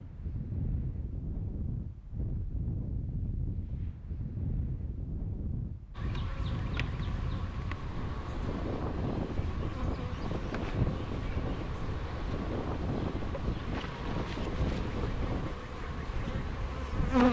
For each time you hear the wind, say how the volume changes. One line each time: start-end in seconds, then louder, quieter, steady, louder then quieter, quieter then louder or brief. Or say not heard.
0.0-17.2 steady.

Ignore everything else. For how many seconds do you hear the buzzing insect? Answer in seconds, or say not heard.
11 s.